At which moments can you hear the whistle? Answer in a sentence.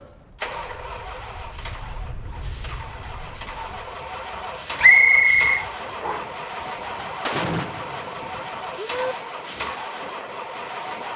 The whistle can be heard from 4.8 to 6.2 s.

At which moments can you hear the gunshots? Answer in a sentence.
You can hear the gunshots from 7.2 to 9.2 s.